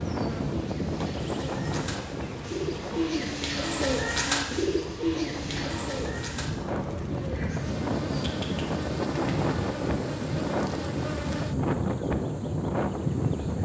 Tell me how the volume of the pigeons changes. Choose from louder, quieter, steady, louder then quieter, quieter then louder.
louder then quieter.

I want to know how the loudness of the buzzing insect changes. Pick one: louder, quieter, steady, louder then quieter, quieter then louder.
louder.